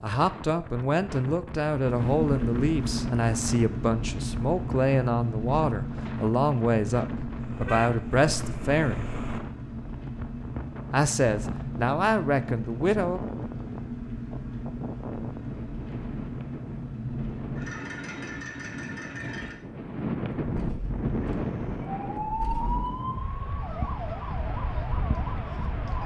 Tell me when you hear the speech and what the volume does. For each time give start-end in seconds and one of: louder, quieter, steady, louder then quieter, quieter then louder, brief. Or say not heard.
0.0-9.2 steady
10.9-13.2 brief.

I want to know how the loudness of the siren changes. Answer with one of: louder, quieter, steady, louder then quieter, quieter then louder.
quieter.